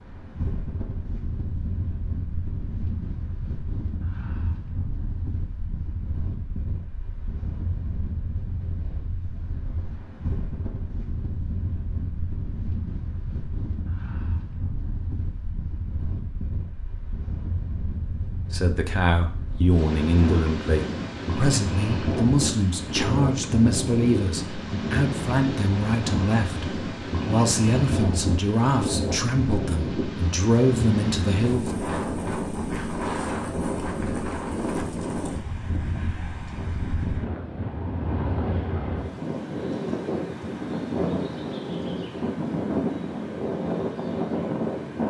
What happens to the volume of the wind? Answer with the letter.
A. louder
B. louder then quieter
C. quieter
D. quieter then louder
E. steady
A.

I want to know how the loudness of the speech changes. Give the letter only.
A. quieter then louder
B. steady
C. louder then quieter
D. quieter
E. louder
B.